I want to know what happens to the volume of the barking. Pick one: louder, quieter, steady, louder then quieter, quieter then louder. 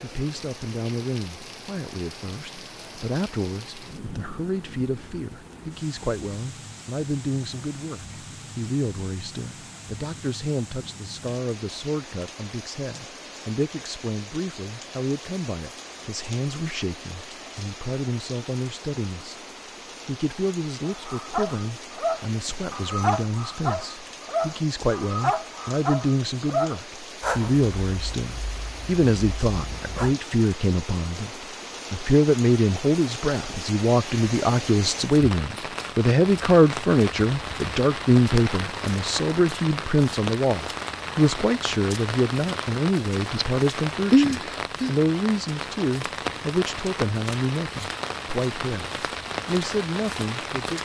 quieter.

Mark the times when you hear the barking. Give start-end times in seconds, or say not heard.
20.8-30.1.